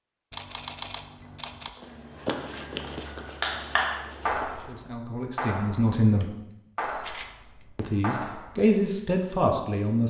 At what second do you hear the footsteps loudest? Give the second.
2 s.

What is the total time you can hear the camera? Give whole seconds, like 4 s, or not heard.
3 s.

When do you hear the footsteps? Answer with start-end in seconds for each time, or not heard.
1.8-4.8.